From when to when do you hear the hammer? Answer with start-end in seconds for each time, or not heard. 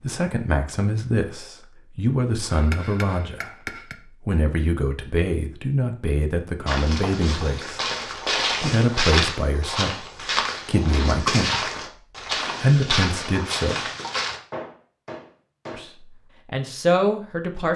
2.5-4.0, 14.5-15.9.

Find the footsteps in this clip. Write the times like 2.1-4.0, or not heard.
6.7-14.4.